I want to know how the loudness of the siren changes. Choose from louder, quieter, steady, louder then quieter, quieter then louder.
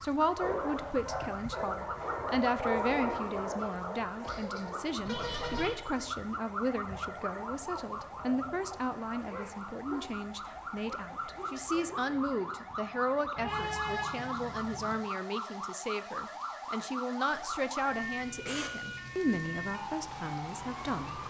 steady.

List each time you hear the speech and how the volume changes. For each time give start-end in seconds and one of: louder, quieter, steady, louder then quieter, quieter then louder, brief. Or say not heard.
0.0-21.2 steady.